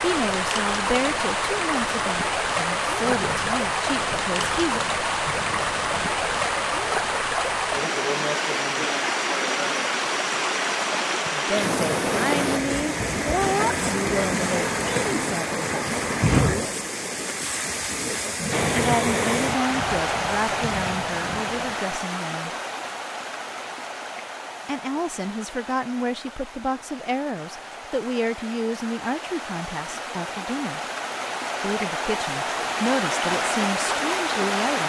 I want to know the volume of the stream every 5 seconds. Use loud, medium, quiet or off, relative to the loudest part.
loud, loud, loud, loud, medium, quiet, loud.